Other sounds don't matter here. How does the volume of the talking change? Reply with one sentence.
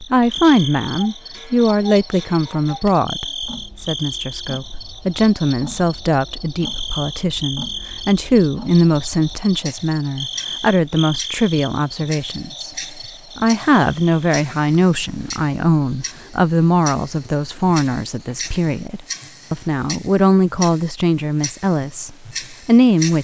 The loudness of the talking stays about the same.